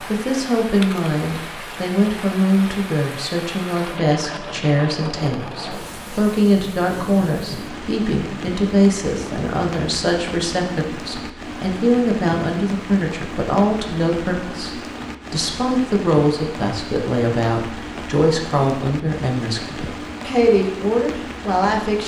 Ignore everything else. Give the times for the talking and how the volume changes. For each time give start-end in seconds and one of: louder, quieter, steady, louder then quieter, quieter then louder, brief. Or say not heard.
0.0-22.0 steady.